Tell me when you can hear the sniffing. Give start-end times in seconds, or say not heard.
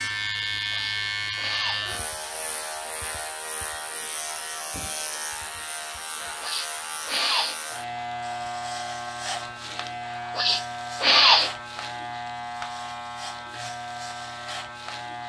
0.7-1.9, 6.4-7.5, 10.3-11.5.